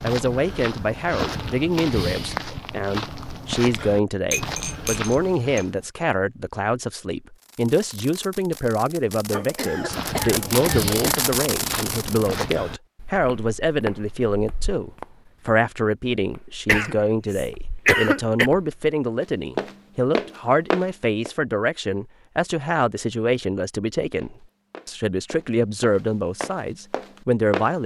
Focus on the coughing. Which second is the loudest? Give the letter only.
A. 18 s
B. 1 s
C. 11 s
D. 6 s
A.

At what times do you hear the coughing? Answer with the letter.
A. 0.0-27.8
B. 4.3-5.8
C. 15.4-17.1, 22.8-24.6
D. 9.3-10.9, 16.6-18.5
D.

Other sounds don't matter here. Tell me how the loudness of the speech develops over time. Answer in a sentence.
The loudness of the speech stays about the same.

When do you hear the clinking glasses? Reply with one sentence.
The clinking glasses can be heard from 4.3 to 5.8 s.